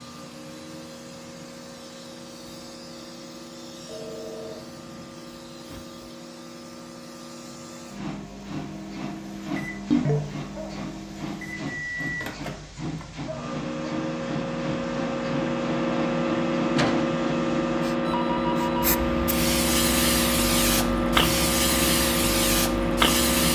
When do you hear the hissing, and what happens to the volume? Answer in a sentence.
The hissing can be heard from 0.0 to 23.5 s, getting louder.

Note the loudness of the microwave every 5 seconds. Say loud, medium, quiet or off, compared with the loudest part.
quiet, quiet, medium, loud, loud.